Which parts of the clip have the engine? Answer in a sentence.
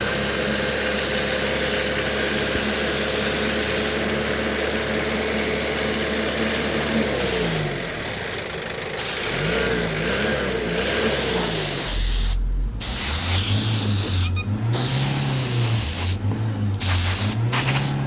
The engine can be heard from 0.0 to 18.0 s.